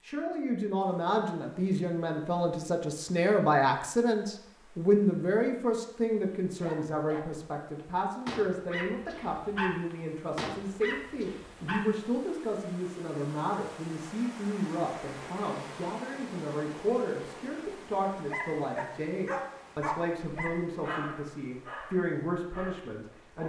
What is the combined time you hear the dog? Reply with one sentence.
The dog can be heard for 10 seconds in total.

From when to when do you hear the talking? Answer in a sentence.
You can hear the talking from 0.0 to 23.4 s.